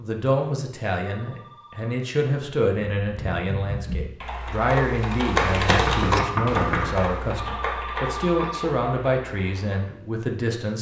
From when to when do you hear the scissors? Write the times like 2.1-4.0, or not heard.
not heard.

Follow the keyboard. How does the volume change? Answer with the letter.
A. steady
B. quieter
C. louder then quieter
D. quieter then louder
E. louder
C.